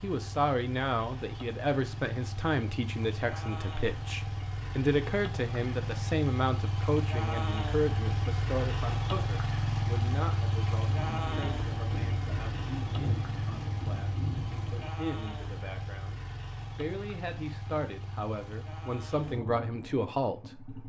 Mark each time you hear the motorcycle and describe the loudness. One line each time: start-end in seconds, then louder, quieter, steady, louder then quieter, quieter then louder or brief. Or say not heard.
0.0-20.8 louder then quieter.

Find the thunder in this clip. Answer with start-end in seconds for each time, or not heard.
10.8-14.9.